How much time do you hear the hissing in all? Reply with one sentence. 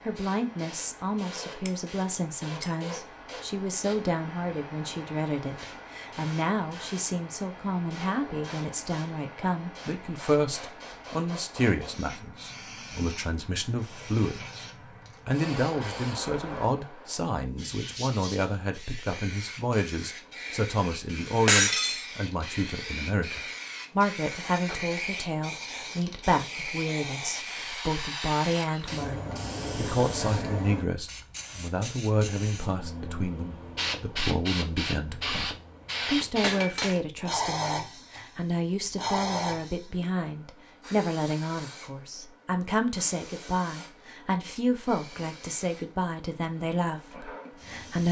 The hissing can be heard for 46 seconds in total.